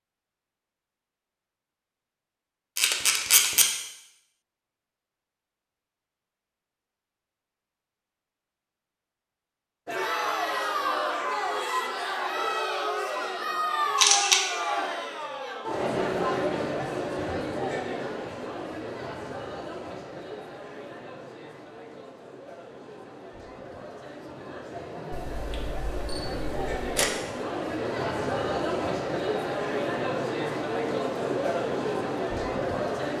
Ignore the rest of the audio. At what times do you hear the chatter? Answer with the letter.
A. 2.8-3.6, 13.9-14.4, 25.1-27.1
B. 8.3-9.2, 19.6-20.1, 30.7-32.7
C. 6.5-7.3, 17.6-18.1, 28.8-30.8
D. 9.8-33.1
D.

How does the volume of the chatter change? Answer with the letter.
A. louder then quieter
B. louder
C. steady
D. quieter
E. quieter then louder
E.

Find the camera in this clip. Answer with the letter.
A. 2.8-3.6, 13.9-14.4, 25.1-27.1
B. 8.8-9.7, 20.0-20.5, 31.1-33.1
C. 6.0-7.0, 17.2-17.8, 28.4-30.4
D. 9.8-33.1
A.